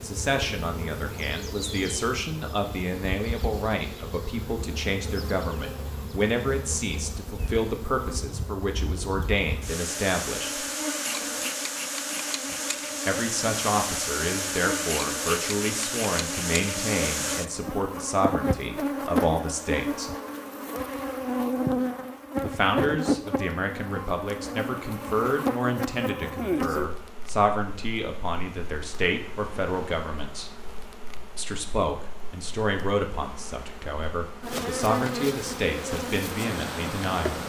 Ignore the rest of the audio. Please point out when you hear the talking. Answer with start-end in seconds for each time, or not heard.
0.0-10.7, 13.1-20.1, 22.4-30.5, 31.4-37.4.